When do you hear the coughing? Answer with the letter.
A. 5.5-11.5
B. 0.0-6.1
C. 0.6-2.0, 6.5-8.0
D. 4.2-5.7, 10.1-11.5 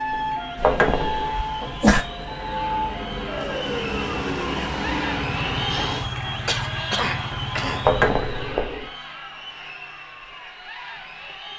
C.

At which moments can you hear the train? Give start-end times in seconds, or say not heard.
0.0-6.1.